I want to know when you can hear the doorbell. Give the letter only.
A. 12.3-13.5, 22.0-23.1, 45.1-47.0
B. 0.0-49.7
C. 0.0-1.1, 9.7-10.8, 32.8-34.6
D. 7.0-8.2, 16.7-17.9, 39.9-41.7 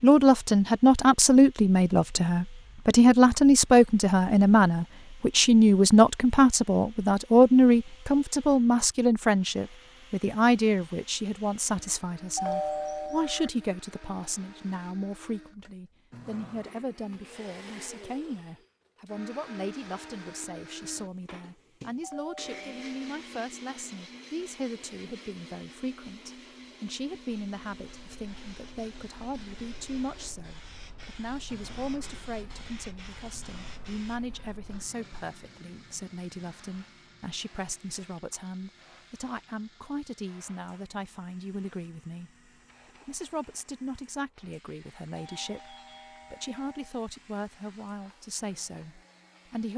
A.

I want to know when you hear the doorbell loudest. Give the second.
13 s.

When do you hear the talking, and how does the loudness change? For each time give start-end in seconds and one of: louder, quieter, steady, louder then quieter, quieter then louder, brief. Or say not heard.
0.0-49.7 quieter.